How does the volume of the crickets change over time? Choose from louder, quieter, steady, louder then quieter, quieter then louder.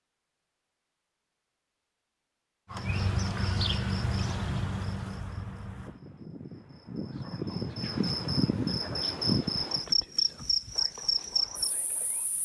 quieter then louder.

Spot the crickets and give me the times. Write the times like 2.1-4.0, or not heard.
2.7-12.4.